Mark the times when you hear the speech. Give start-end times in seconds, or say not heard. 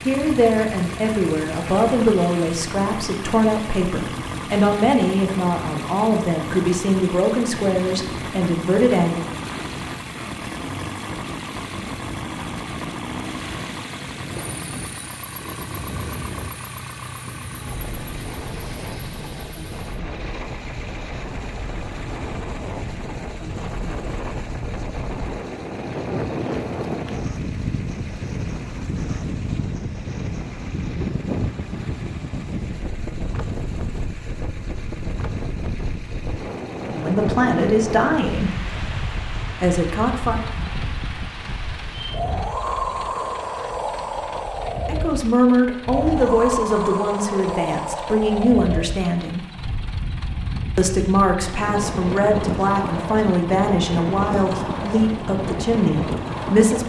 0.1-9.2, 36.8-38.5, 39.6-40.4, 44.9-49.5, 50.8-56.8.